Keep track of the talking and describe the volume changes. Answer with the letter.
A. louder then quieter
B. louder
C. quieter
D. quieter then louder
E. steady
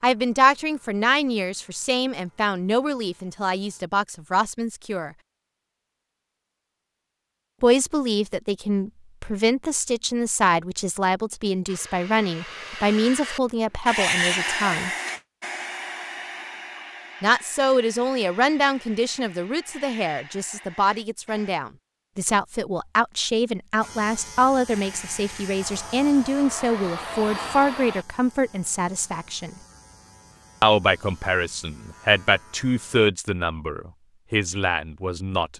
E.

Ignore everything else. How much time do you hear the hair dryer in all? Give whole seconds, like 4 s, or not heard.
13 s.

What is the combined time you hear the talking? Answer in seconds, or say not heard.
30 s.